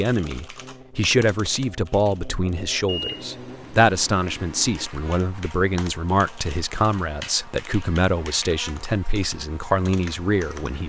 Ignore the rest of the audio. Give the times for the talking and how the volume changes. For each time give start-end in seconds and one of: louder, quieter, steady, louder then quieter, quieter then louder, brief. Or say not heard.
0.0-10.8 steady.